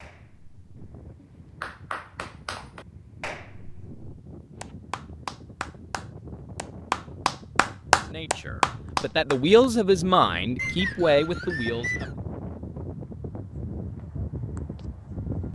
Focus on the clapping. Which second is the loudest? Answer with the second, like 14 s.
8 s.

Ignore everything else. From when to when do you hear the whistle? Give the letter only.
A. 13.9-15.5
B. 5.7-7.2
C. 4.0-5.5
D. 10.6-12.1
D.